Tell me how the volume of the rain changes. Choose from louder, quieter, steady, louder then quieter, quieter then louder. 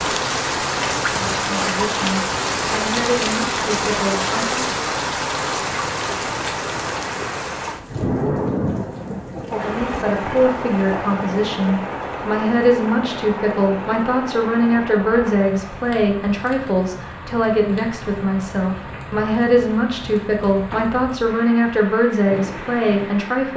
quieter.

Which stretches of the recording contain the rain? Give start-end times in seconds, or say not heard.
0.0-23.5.